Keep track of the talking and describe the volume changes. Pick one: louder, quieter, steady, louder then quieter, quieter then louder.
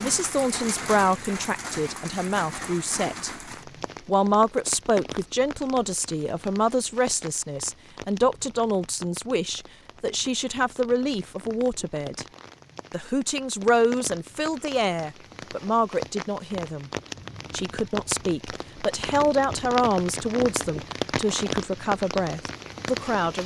steady.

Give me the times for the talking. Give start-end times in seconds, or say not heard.
0.0-3.3, 4.0-12.2, 12.9-16.9, 17.5-23.4.